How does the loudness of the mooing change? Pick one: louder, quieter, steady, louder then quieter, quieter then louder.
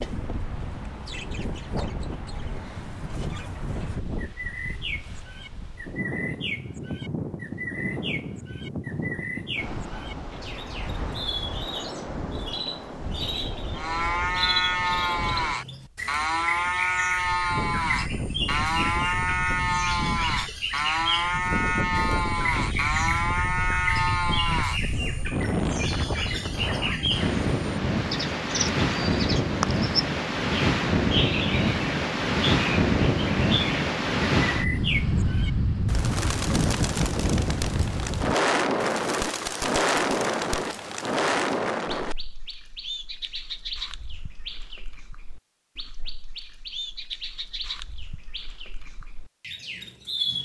steady.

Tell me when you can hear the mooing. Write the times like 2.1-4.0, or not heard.
13.7-25.2.